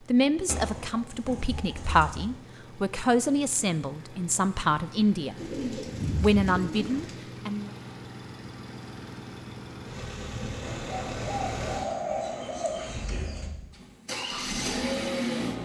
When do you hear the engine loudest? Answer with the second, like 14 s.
15 s.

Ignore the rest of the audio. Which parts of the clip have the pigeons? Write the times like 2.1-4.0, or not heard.
0.5-2.2, 5.3-7.2, 10.6-13.5.